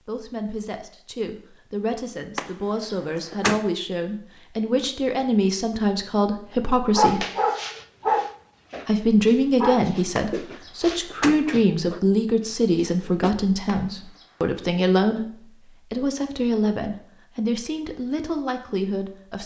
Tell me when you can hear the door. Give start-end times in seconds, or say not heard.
2.4-3.6, 10.2-11.4, 13.7-14.3.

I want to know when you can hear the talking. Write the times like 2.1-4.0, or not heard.
0.1-7.2, 8.8-19.4.